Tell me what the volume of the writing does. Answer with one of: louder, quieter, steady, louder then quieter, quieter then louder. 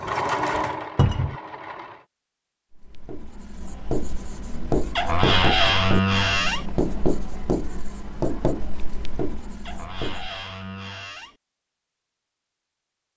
louder then quieter.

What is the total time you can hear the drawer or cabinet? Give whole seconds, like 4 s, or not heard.
4 s.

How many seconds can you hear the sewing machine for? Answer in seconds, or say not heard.
2 s.